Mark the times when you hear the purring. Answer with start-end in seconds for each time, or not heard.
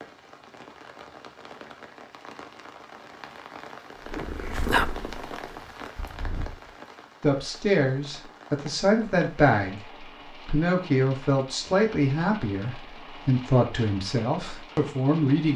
4.0-6.8.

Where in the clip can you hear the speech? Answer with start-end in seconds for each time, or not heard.
7.2-15.5.